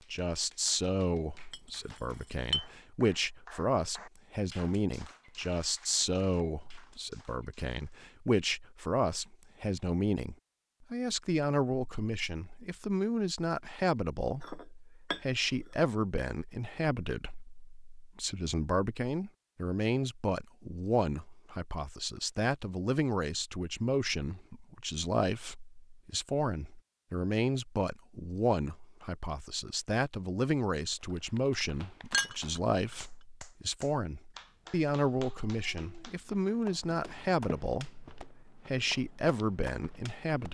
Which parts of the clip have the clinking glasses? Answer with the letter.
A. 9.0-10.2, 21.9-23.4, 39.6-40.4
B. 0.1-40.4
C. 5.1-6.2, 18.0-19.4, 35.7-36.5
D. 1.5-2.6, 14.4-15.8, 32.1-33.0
D.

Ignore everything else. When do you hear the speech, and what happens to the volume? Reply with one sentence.
You can hear the speech from 0.1 to 40.4 s, at a steady volume.